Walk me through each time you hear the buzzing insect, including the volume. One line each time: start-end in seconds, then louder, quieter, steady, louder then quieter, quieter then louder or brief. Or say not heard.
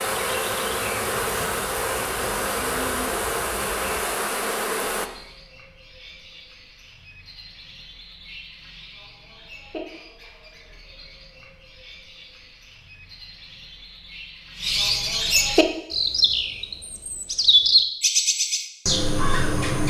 0.0-5.1 steady.